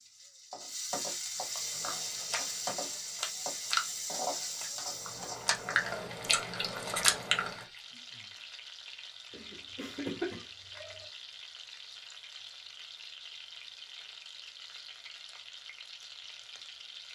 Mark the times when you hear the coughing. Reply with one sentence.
The coughing can be heard from 9.3 to 11.1 s.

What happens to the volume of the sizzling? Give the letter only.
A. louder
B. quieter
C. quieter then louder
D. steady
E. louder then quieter
B.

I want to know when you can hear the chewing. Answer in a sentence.
The chewing can be heard from 1.6 to 7.6 s.